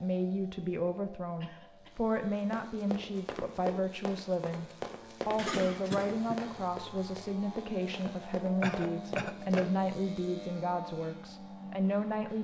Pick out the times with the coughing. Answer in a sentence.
The coughing can be heard from 1.4 to 2.0 s, from 5.3 to 6.7 s and from 8.6 to 9.7 s.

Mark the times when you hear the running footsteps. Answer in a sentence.
The running footsteps can be heard from 2.5 to 9.9 s.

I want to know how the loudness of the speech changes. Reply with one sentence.
The volume of the speech stays about the same.